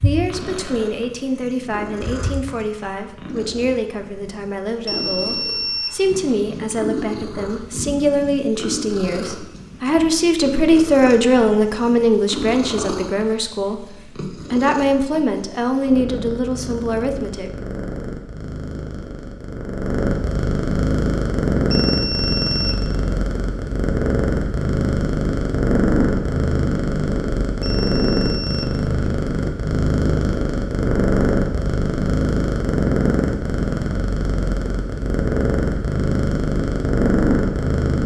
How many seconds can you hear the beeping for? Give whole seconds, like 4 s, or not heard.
4 s.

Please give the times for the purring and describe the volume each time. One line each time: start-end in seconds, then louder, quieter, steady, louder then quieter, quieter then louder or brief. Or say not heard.
0.0-38.0 louder.